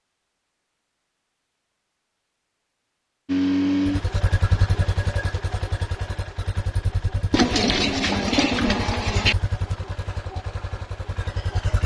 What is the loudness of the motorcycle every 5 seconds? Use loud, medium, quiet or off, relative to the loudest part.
loud, medium, medium.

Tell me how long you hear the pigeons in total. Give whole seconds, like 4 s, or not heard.
2 s.